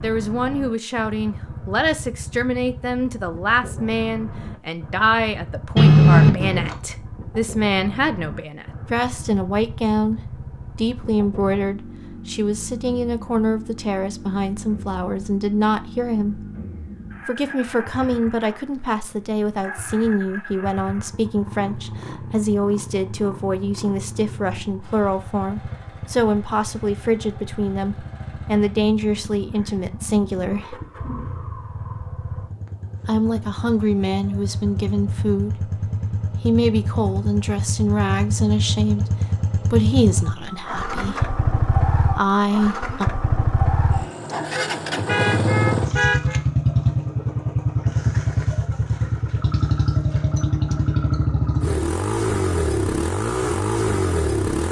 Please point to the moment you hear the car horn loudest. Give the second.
6 s.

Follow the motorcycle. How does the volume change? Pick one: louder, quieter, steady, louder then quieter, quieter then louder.
louder.